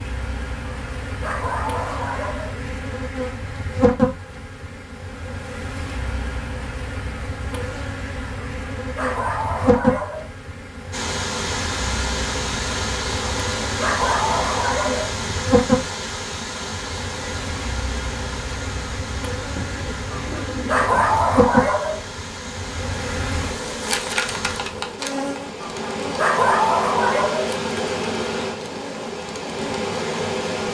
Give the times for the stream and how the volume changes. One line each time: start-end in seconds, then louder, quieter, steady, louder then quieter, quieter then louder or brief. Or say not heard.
10.9-30.6 quieter then louder.